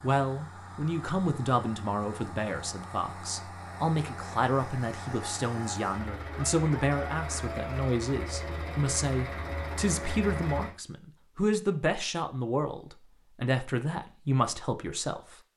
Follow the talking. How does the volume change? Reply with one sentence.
The loudness of the talking stays about the same.